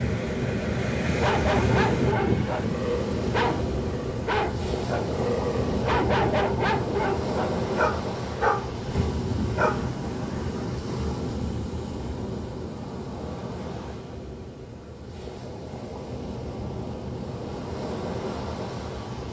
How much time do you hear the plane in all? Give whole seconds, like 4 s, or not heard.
3 s.